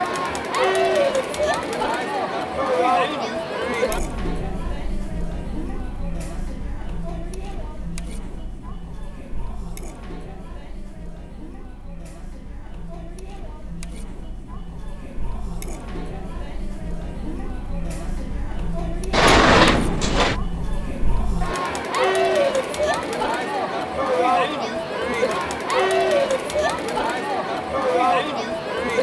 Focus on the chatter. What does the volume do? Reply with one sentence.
The loudness of the chatter goes down, then up.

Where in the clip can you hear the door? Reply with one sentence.
The door can be heard from 19.1 to 20.4 s.